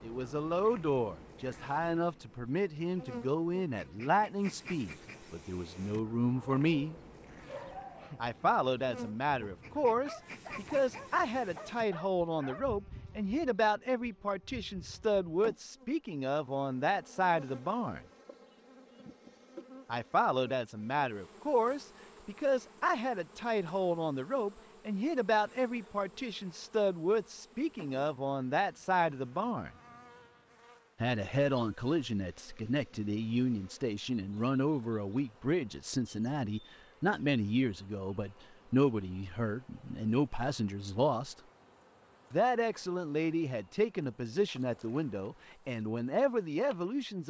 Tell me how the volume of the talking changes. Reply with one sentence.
The loudness of the talking stays about the same.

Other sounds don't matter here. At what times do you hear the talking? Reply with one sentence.
You can hear the talking from 0.0 to 7.0 s, from 8.2 to 18.0 s, from 19.9 to 29.7 s, from 31.0 to 41.4 s and from 42.3 to 47.2 s.